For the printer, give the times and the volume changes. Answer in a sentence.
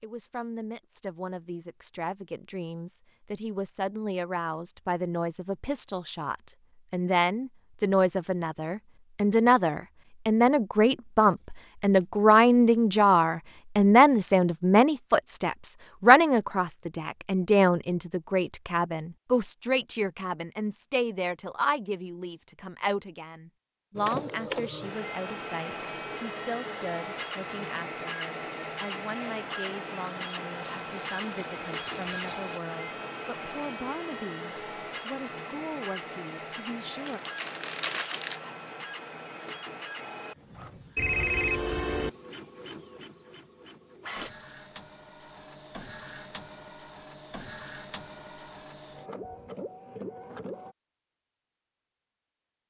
You can hear the printer from 23.9 to 50.8 s, getting quieter.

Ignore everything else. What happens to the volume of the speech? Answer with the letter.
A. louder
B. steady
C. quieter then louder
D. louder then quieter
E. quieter
D.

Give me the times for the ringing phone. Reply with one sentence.
The ringing phone can be heard from 41.0 to 42.1 s.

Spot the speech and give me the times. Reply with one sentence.
You can hear the speech from 0.0 to 37.2 s.